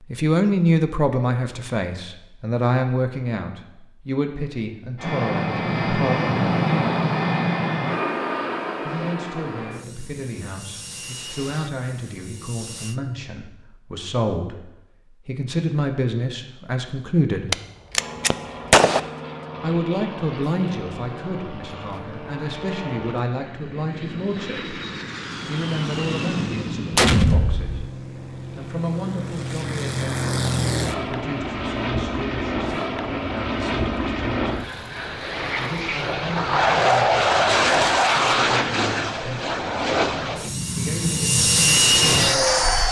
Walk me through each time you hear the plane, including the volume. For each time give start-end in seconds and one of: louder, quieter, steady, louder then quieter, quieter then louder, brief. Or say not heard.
5.0-13.0 quieter
17.9-42.8 louder.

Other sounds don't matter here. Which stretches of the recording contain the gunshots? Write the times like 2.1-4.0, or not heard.
17.5-19.0, 26.9-27.8.